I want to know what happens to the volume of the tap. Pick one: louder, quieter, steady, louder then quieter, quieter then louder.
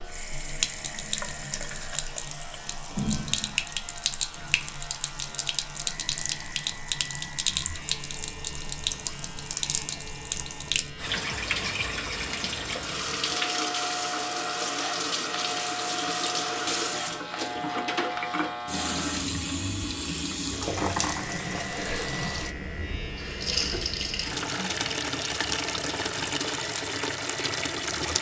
steady.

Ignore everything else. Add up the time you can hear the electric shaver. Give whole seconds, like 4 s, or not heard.
28 s.